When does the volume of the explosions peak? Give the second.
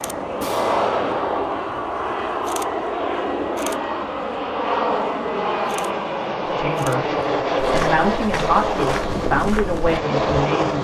1 s.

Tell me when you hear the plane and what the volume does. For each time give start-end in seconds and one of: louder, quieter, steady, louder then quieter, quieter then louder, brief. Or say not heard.
0.0-10.7 steady.